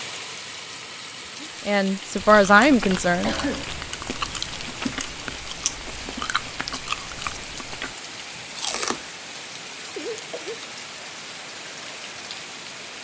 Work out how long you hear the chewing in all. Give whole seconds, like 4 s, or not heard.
7 s.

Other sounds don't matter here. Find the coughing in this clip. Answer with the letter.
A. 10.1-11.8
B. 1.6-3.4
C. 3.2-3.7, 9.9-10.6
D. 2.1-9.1
C.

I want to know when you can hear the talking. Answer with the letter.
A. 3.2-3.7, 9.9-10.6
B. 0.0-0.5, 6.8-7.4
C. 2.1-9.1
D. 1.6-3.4
D.